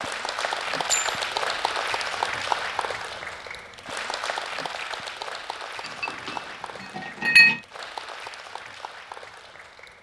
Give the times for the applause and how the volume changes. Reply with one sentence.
The applause can be heard from 0.0 to 9.9 s, getting quieter.